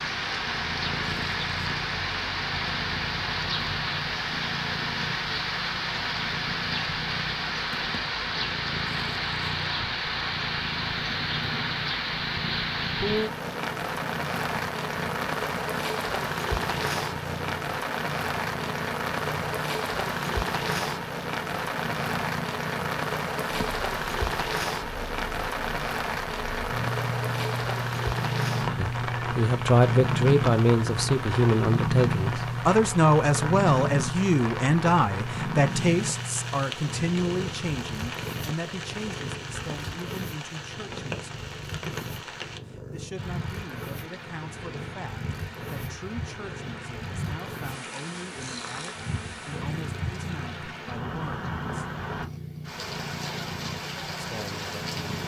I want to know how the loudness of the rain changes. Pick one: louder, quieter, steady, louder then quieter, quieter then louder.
quieter.